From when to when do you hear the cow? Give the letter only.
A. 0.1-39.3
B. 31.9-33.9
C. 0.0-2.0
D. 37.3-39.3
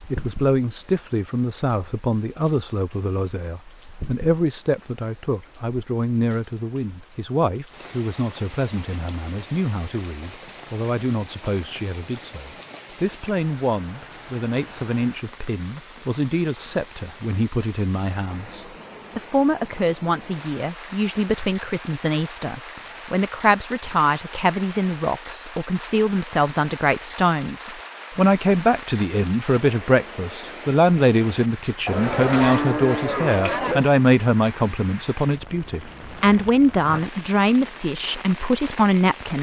B.